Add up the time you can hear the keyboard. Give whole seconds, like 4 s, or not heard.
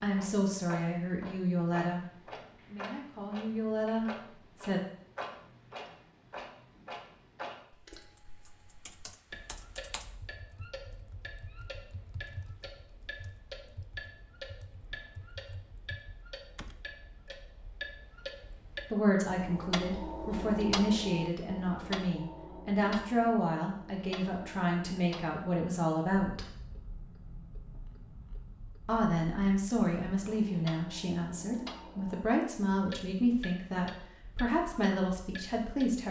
9 s.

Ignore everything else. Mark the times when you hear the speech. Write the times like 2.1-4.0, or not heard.
0.0-4.8, 18.9-26.6, 28.9-36.0.